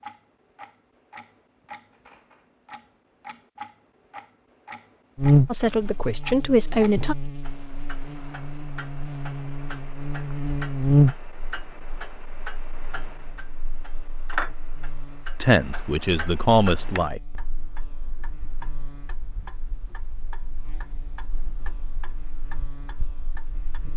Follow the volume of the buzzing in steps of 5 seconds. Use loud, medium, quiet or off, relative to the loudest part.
off, loud, loud, quiet, quiet.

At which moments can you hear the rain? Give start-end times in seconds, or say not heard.
not heard.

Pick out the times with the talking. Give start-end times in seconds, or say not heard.
5.5-7.2, 15.4-17.2.